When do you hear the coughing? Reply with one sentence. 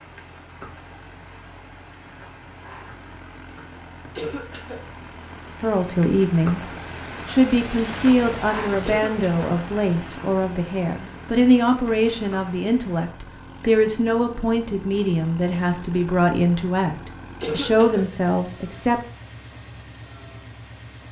The coughing can be heard from 4.2 to 4.8 s, from 8.8 to 9.3 s and from 17.4 to 18.1 s.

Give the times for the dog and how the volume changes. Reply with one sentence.
You can't hear the dog here.